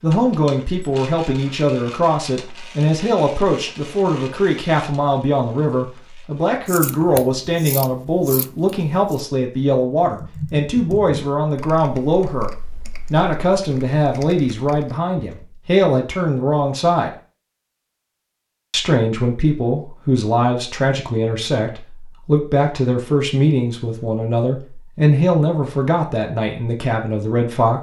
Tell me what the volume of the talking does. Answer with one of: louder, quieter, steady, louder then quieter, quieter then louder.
steady.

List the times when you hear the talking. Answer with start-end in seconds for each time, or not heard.
0.0-17.1, 18.7-27.7.